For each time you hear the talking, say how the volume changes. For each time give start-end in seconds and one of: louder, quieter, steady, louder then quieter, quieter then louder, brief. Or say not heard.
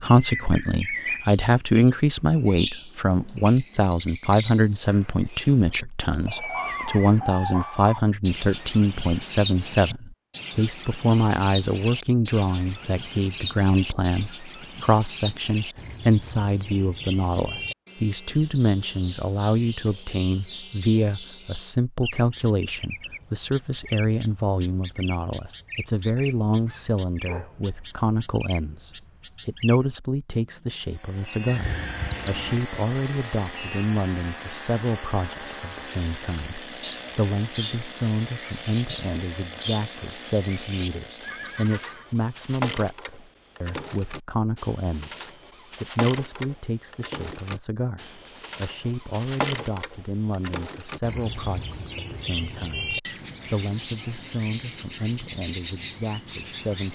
0.0-56.9 quieter.